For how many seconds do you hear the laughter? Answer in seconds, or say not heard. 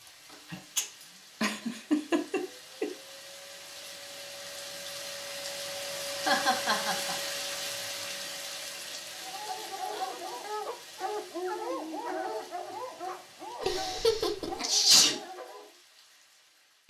4 s.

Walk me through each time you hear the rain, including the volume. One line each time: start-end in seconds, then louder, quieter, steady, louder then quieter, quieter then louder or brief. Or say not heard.
0.0-16.8 louder then quieter.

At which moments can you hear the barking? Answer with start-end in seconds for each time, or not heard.
9.1-15.8.